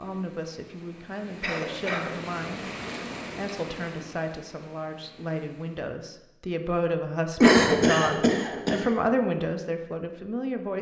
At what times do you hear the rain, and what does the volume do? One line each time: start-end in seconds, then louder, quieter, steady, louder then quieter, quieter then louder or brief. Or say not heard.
0.0-5.9 louder then quieter.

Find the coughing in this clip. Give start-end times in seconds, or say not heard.
1.4-2.1, 7.4-8.8.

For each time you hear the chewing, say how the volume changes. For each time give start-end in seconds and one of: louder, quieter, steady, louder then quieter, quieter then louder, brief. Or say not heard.
not heard.